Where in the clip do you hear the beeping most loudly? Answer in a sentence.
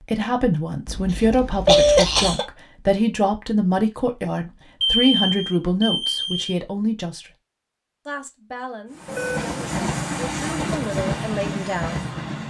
The volume of the beeping peaks at 2 seconds.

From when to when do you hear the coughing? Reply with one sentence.
You can hear the coughing from 1.1 to 2.5 s.